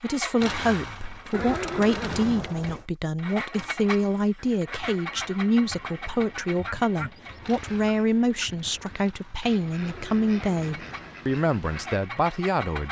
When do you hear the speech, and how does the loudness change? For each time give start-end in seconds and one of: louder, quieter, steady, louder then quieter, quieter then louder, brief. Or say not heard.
0.0-12.8 steady.